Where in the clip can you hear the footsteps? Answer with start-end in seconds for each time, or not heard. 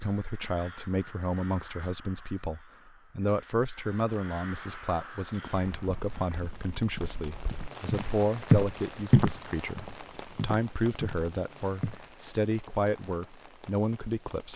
5.8-12.1.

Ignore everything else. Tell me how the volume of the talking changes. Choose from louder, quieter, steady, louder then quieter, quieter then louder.
steady.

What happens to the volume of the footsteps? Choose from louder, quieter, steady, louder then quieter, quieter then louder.
louder then quieter.